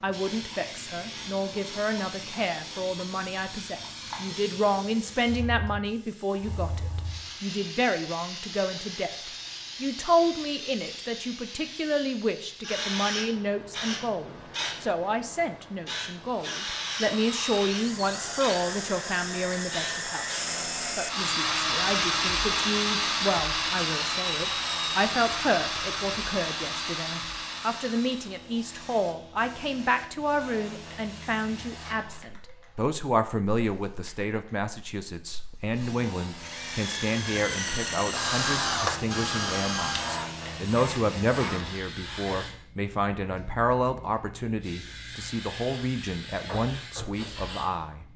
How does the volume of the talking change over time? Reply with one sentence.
The volume of the talking stays about the same.